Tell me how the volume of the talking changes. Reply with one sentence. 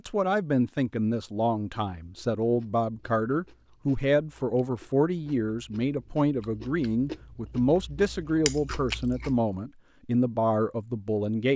The loudness of the talking stays about the same.